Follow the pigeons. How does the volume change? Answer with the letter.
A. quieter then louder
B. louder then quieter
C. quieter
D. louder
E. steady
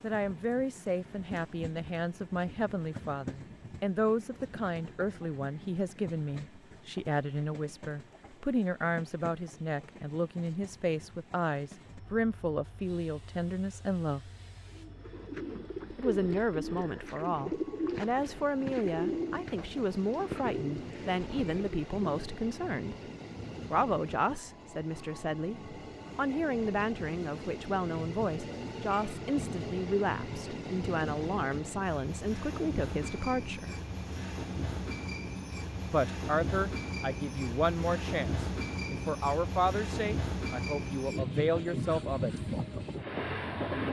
E.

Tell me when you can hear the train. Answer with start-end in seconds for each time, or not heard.
0.0-43.8.